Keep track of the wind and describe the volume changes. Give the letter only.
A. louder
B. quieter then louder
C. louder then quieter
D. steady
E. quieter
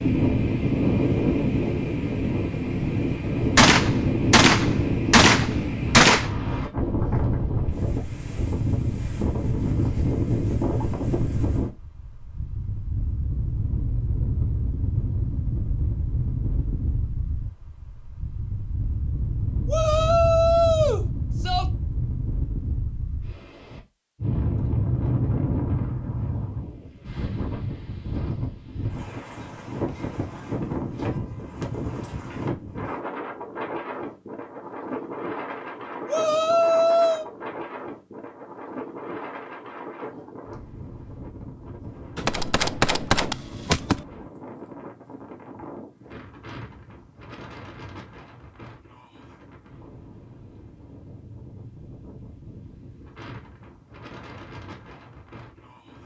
E.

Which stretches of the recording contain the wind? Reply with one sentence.
The wind can be heard from 0.0 to 56.0 s.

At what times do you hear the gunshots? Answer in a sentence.
You can hear the gunshots from 3.5 to 6.3 s and from 42.1 to 44.0 s.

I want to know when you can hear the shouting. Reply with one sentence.
You can hear the shouting from 19.6 to 21.6 s and from 36.0 to 37.2 s.